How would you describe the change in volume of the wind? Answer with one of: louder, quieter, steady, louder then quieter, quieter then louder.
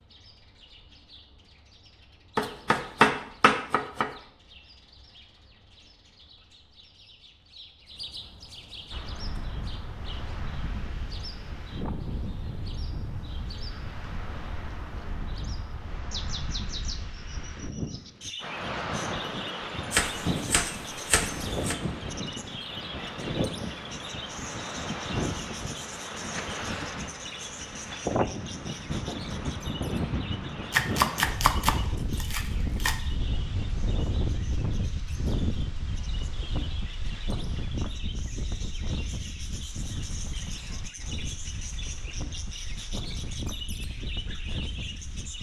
louder then quieter.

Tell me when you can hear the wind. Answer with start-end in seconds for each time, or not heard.
8.9-45.3.